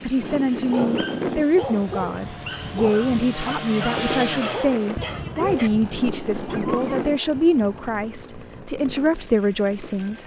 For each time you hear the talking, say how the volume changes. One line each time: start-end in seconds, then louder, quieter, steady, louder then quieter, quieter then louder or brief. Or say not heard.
0.0-10.2 steady.